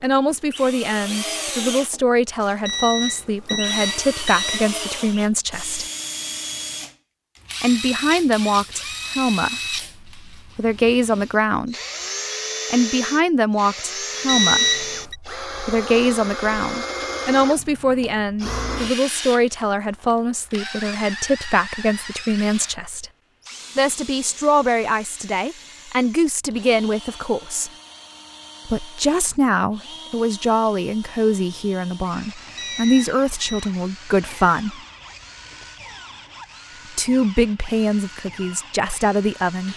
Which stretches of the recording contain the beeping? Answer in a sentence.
The beeping can be heard from 2.6 to 4.7 s, from 14.2 to 15.2 s and from 32.5 to 33.7 s.